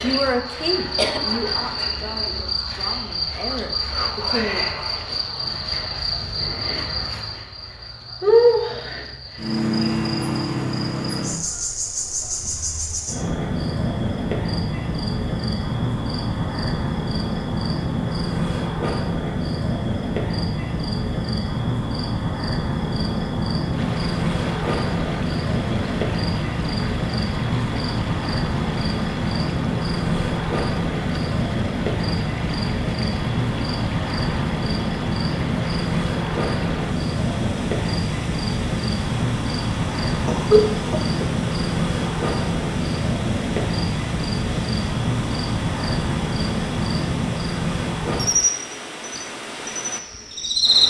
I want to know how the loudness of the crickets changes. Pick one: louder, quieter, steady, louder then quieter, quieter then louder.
steady.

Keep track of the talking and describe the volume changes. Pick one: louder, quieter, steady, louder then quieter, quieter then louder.
quieter then louder.